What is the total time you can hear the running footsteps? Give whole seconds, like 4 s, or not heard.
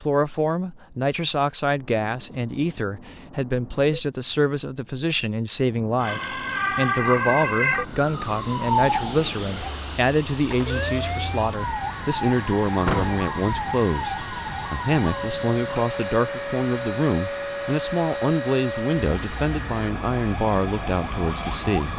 not heard.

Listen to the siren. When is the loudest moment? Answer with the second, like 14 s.
7 s.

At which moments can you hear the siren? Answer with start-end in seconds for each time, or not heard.
6.0-21.9.